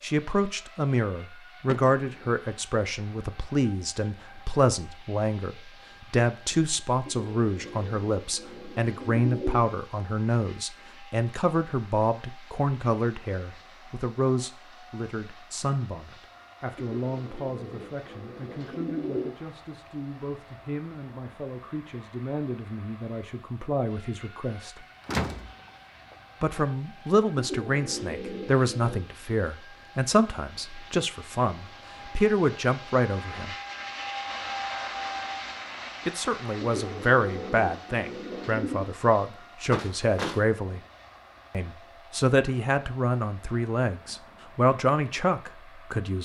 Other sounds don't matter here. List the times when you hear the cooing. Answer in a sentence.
You can hear the cooing from 7.0 to 9.7 s, from 16.8 to 19.4 s, from 27.4 to 29.1 s and from 36.6 to 38.9 s.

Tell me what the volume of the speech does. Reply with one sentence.
The volume of the speech goes down, then up.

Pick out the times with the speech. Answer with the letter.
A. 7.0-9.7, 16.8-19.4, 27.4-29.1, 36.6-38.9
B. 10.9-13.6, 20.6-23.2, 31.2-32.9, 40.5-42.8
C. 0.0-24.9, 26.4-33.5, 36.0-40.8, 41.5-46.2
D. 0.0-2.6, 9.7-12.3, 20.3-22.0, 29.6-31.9
C.